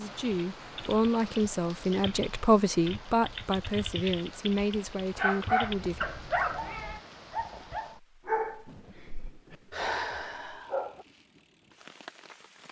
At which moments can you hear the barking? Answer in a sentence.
You can hear the barking from 5.2 to 11.1 s.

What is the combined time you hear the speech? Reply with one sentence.
The speech can be heard for 6 seconds in total.